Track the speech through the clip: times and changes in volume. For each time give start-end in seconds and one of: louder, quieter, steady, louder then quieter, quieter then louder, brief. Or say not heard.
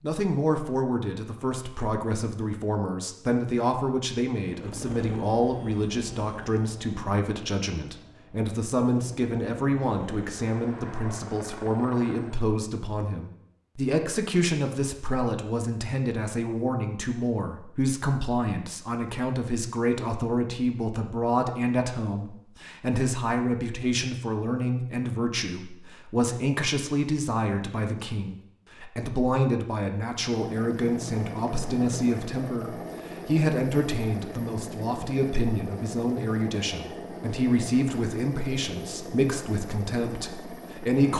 0.0-41.1 steady.